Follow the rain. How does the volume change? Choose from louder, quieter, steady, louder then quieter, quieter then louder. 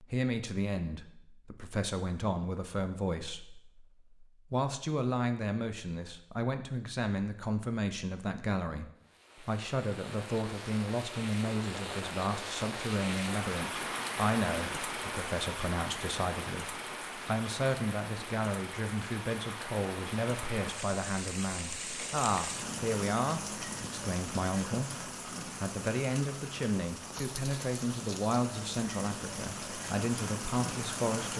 steady.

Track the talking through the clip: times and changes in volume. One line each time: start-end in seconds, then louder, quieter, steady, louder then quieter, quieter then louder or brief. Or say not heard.
0.0-31.3 steady.